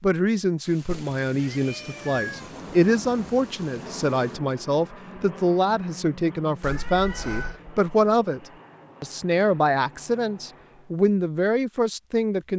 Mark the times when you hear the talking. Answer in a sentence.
You can hear the talking from 0.0 to 12.5 s.